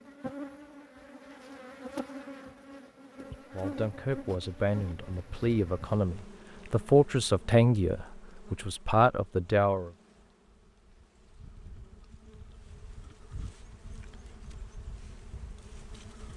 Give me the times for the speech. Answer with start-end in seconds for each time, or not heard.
3.5-9.9.